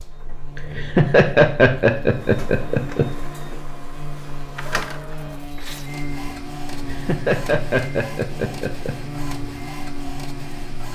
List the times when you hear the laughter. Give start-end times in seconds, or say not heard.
0.6-3.0, 6.7-8.9.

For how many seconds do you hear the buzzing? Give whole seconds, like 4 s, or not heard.
11 s.